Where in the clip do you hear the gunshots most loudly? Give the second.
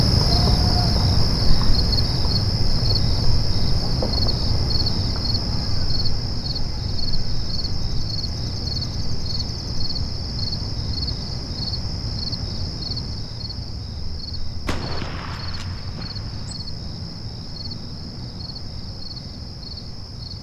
15 s.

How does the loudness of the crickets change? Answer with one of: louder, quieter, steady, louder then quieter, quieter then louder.
quieter.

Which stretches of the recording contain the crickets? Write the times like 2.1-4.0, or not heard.
0.0-20.3.